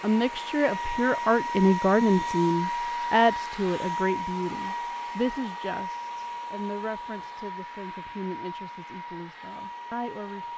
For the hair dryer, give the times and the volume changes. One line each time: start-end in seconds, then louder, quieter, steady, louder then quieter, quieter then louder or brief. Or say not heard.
0.0-10.5 quieter.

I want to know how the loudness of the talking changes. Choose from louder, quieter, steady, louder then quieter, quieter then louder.
quieter.